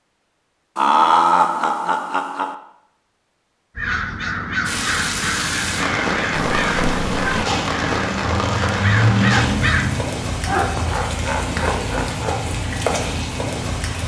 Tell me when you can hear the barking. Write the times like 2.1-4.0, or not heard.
not heard.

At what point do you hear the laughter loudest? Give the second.
1 s.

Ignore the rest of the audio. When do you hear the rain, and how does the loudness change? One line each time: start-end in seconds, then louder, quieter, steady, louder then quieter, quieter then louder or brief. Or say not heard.
4.7-14.0 steady.